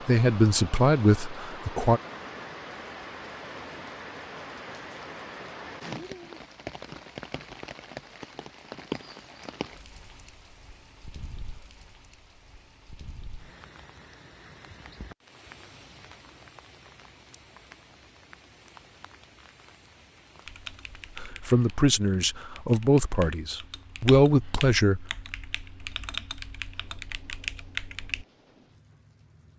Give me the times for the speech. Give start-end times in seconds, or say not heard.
0.1-2.0, 21.1-25.1.